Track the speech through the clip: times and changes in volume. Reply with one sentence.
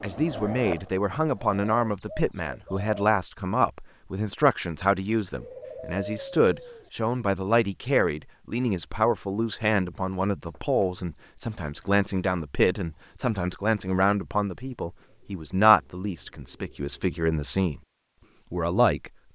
The speech can be heard from 0.0 to 17.8 s, at a steady volume; and briefly from 18.5 to 19.3 s.